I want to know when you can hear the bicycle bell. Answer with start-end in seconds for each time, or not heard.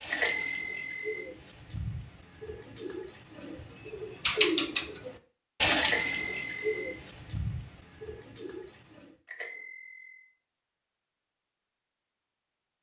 0.1-1.2, 5.8-6.9, 9.2-10.2.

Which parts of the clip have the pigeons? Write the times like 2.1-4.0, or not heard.
0.0-9.2.